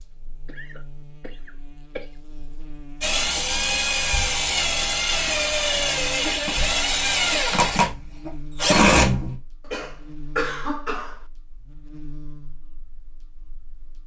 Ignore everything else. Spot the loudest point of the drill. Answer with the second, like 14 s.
9 s.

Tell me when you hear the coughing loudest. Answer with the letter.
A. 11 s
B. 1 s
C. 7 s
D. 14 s
A.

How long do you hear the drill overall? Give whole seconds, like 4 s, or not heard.
6 s.